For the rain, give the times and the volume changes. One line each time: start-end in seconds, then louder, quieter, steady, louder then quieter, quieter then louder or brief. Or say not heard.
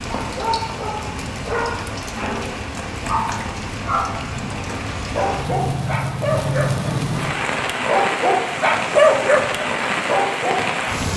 0.0-11.1 louder.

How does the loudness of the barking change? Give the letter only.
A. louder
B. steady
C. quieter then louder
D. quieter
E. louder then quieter
A.